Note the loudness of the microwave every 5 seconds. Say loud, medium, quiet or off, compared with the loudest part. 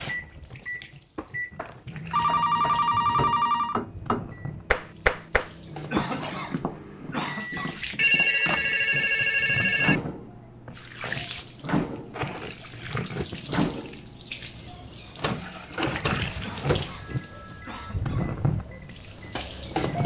medium, loud, loud, loud.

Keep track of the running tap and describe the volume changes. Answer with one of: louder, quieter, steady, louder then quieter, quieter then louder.
louder.